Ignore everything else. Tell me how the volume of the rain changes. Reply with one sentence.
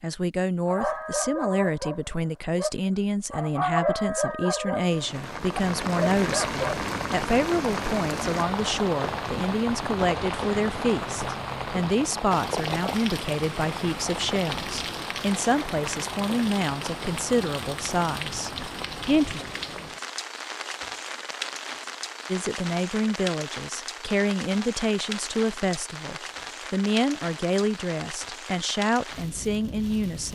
The volume of the rain goes down.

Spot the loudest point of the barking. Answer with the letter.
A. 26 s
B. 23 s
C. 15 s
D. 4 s
D.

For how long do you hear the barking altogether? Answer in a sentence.
You can hear the barking for 6 seconds altogether.